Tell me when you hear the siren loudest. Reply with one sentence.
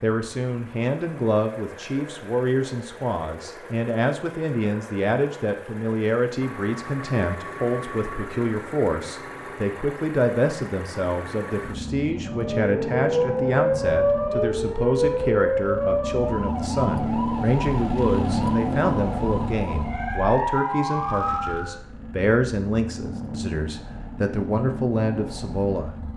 The loudest moment of the siren is at 14 seconds.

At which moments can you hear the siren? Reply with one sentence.
The siren can be heard from 12.2 to 21.9 s.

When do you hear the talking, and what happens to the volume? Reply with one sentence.
The talking can be heard from 0.0 to 25.9 s, at a steady volume.